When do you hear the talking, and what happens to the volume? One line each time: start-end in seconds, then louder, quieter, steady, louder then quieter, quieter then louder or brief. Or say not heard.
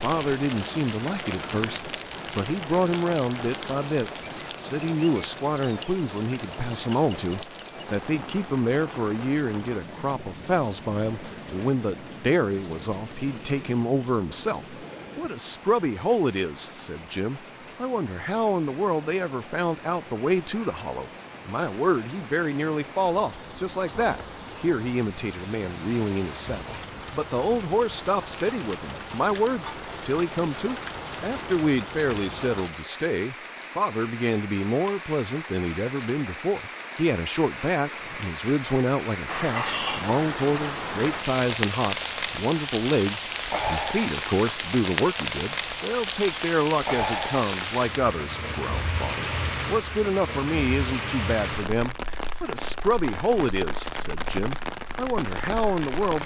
0.0-56.2 steady.